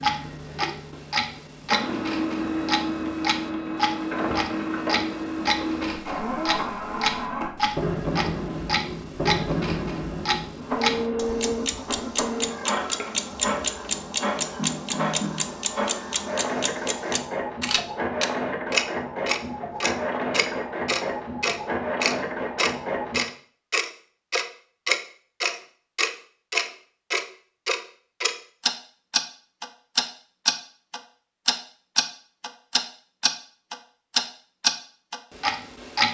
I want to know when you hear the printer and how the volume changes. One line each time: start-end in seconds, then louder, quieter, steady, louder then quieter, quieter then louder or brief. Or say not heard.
0.0-23.2 steady.